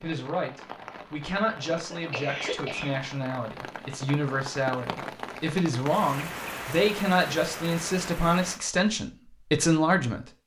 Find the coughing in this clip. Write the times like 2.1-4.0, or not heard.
1.7-3.0.